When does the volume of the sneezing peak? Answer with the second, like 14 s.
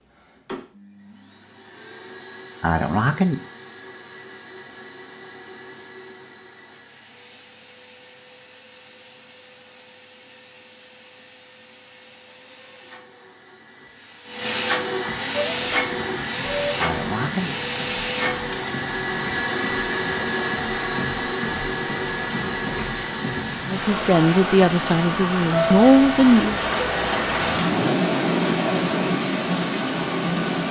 3 s.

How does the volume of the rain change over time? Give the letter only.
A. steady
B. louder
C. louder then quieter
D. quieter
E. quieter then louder
B.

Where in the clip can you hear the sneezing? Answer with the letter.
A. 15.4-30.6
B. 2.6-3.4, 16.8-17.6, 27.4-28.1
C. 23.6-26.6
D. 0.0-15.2
B.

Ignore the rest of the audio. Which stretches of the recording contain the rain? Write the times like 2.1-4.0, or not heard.
15.4-30.6.